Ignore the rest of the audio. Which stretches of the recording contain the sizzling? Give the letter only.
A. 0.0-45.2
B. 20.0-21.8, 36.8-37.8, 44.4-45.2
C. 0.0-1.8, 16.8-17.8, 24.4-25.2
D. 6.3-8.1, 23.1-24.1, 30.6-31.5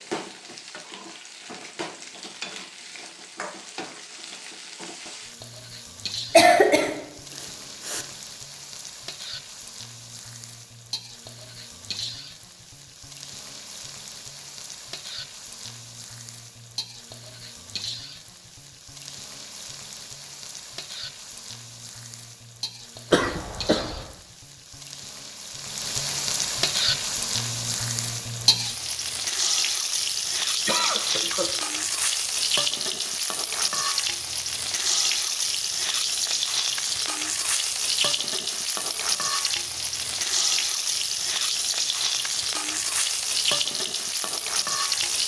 A.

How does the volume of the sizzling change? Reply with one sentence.
The volume of the sizzling goes up.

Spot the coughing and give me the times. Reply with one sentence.
The coughing can be heard from 6.3 to 8.1 s, from 23.1 to 24.1 s and from 30.6 to 31.5 s.